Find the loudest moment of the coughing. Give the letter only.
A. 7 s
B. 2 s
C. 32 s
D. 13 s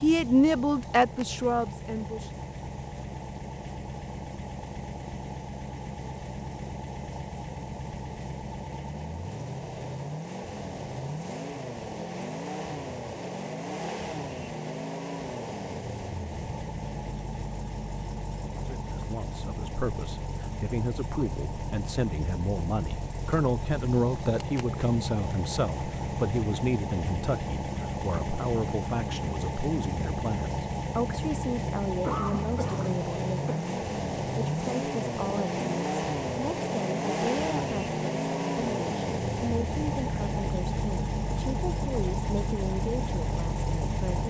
C.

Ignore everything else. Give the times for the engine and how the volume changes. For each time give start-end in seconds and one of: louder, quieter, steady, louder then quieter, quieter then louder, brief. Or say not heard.
0.0-44.2 louder.